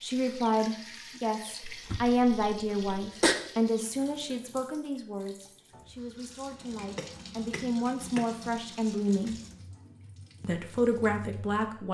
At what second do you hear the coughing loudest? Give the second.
3 s.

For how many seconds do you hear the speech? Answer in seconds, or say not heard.
11 s.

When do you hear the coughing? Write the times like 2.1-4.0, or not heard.
1.6-3.4, 7.0-8.3.